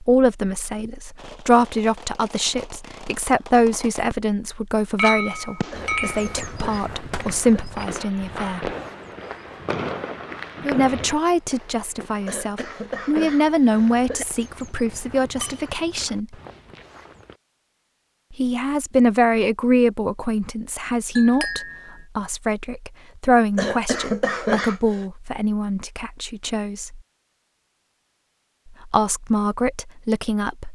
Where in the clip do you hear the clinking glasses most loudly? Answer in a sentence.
The loudest moment of the clinking glasses is at 5 seconds.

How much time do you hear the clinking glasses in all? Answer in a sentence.
You can hear the clinking glasses for 3 seconds altogether.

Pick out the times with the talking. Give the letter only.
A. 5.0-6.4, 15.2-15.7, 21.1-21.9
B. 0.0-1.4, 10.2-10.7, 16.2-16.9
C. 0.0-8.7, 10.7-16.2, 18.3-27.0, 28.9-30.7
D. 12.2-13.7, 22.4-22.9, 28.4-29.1
C.